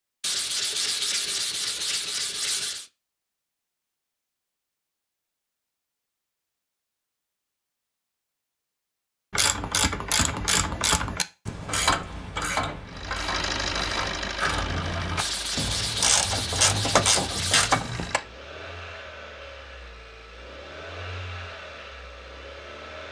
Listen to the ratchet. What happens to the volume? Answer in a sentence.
The volume of the ratchet goes down, then up.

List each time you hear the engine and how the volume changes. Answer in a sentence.
The engine can be heard from 12.8 to 23.0 s, getting quieter.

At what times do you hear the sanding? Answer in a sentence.
You can hear the sanding from 0.2 to 2.9 s and from 15.2 to 17.9 s.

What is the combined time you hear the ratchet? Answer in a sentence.
The ratchet can be heard for 9 seconds in total.